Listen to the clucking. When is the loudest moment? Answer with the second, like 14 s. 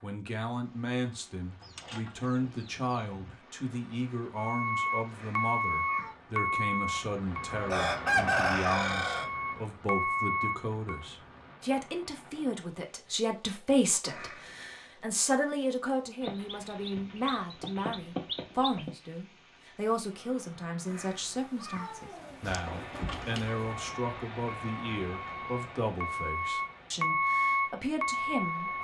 8 s.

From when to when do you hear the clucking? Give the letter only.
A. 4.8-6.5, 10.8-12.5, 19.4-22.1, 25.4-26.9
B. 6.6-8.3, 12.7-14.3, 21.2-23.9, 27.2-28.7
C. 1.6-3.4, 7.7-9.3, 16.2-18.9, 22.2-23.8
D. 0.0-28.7
C.